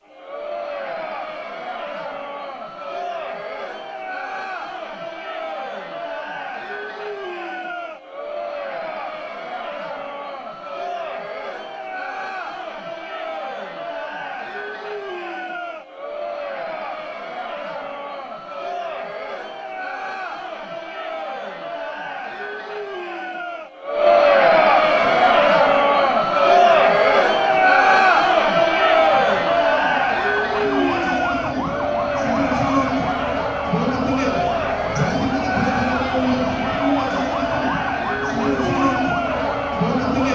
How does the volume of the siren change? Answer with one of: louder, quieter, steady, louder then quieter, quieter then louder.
louder.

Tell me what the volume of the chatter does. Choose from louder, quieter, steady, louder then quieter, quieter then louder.
louder then quieter.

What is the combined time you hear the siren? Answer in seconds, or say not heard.
15 s.